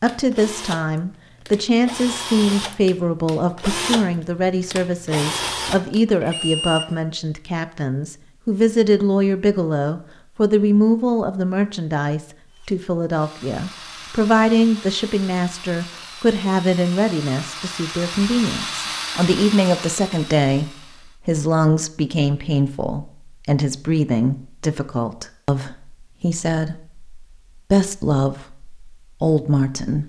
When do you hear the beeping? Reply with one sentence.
You can hear the beeping from 6.2 to 7.0 s.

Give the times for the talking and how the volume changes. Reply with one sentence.
You can hear the talking from 0.0 to 30.0 s, at a steady volume.